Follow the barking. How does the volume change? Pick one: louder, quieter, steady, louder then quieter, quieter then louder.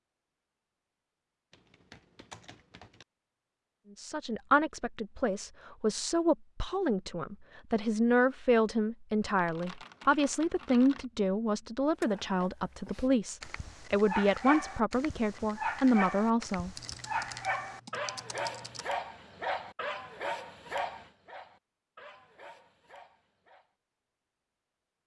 quieter.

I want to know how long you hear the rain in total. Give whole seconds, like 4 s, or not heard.
not heard.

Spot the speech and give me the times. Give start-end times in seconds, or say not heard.
4.0-16.8.